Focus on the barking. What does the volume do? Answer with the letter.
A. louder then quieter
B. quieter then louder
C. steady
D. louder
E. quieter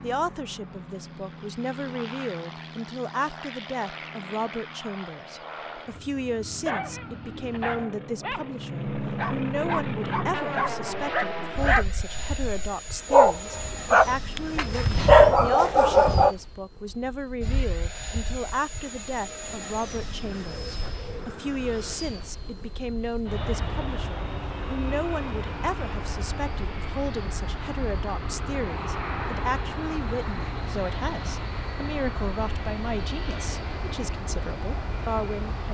D.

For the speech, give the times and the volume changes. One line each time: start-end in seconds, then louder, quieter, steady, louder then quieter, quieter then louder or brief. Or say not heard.
0.0-35.6 steady.